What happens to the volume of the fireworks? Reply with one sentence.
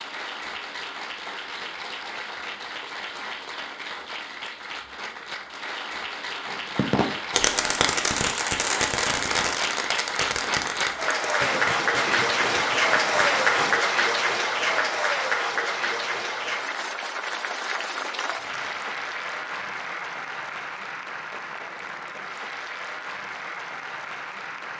The volume of the fireworks goes down.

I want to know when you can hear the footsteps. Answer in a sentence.
You can't hear the footsteps here.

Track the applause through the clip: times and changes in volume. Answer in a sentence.
You can hear the applause from 0.0 to 24.7 s, getting louder then quieter.